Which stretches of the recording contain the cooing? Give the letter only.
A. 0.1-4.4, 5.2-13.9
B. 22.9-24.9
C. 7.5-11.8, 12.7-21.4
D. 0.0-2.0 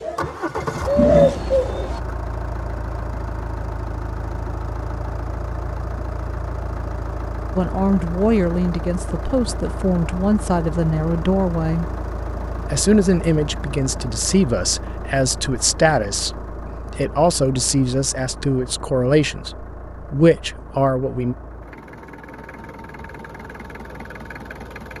D.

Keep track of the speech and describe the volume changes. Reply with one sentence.
The volume of the speech stays about the same.